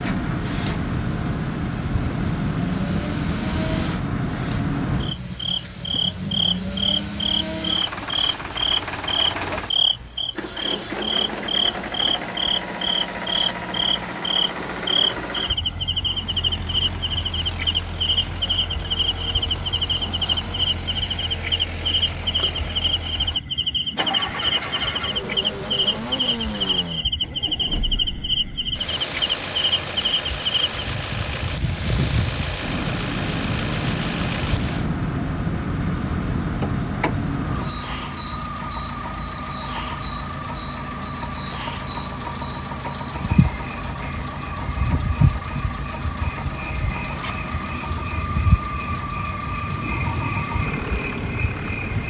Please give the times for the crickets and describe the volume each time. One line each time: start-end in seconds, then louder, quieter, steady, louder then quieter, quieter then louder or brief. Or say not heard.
0.0-52.0 steady.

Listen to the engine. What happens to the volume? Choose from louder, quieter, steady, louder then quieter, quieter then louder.
steady.